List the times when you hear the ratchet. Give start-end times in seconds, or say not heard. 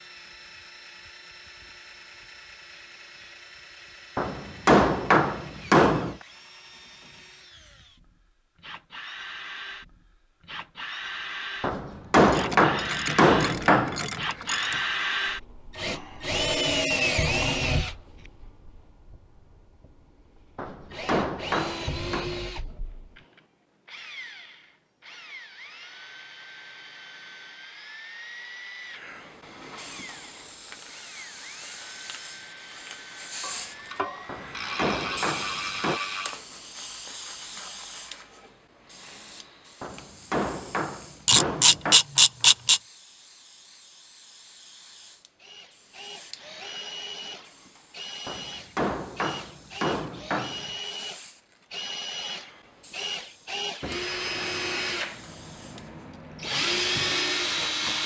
12.2-14.8, 33.4-36.4, 41.2-42.8.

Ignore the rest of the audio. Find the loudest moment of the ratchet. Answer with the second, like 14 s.
42 s.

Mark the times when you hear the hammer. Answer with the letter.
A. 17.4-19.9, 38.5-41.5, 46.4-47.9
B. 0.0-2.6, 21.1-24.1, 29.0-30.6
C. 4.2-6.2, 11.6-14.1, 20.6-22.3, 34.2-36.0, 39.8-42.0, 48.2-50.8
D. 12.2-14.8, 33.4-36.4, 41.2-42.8
C.